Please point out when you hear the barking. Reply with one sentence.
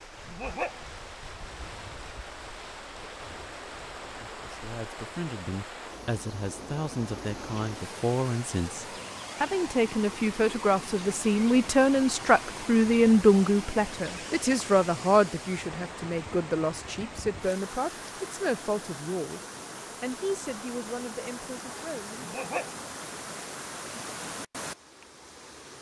You can hear the barking from 0.2 to 0.9 s and from 22.2 to 22.9 s.